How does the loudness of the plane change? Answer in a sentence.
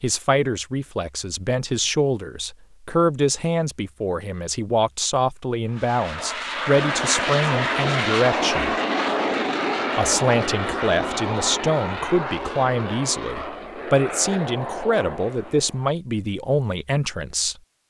The loudness of the plane goes down.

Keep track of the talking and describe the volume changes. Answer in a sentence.
The loudness of the talking stays about the same.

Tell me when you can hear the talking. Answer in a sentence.
The talking can be heard from 0.0 to 8.8 s and from 9.9 to 17.6 s.